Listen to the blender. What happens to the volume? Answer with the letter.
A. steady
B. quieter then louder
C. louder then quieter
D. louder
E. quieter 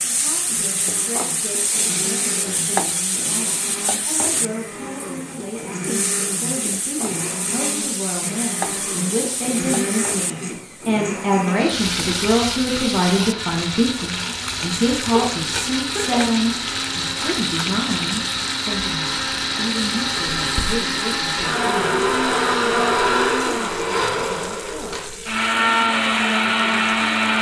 D.